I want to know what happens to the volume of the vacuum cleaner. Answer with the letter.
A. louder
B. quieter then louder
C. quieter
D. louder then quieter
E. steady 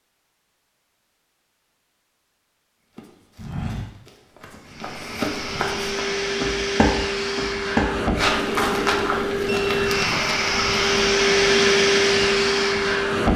A.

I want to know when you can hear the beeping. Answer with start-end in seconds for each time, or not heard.
9.4-10.2.